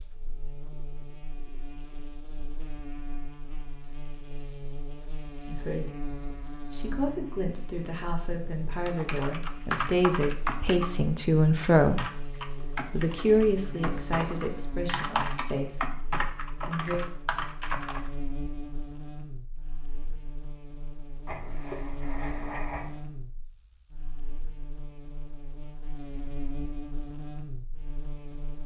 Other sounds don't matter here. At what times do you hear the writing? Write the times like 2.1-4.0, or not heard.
21.2-22.9.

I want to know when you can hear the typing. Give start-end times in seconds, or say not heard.
8.8-10.9, 11.6-18.1.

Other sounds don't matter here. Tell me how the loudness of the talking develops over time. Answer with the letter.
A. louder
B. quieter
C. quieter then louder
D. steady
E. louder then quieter
E.